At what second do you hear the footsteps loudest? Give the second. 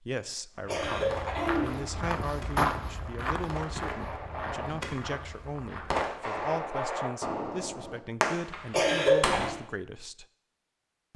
3 s.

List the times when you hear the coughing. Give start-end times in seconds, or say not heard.
0.7-1.8, 8.7-9.5.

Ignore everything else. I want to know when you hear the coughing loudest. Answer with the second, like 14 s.
9 s.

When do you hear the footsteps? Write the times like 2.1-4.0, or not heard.
0.6-6.5.